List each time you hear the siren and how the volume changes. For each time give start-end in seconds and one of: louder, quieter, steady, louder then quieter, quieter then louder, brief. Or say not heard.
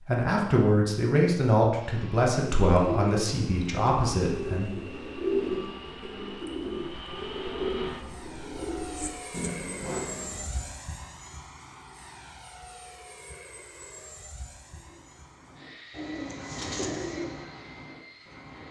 not heard.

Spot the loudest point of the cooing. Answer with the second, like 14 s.
5 s.